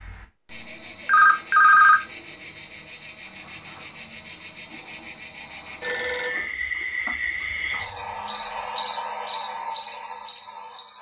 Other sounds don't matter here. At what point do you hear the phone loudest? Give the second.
2 s.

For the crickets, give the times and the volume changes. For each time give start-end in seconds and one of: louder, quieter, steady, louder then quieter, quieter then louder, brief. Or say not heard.
0.0-10.9 louder.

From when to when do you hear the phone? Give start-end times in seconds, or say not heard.
1.1-2.0, 5.8-6.5.